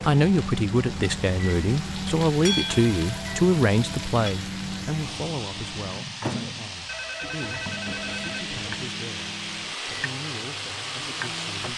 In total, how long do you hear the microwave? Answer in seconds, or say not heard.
12 s.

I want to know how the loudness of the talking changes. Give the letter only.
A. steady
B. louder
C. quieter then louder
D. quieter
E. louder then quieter
D.